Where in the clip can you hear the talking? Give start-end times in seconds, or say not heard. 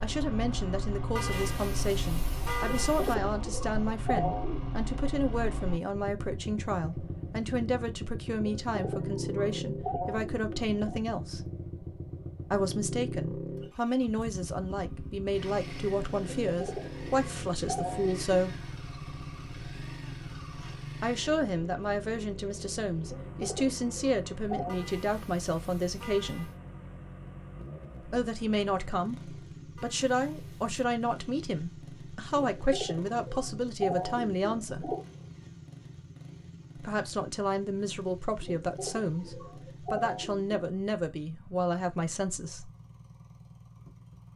0.0-11.4, 12.5-18.6, 21.0-26.5, 28.1-35.0, 36.8-42.7.